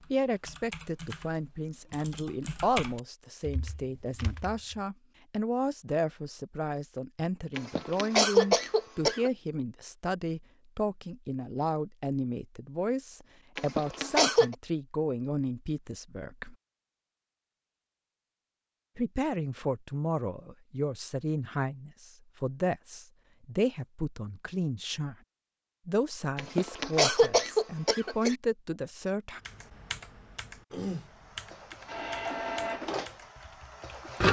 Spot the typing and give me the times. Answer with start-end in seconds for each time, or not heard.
0.0-4.8, 29.4-34.1.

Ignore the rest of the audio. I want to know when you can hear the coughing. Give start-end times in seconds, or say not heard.
7.5-9.3, 13.6-14.6, 26.4-28.4.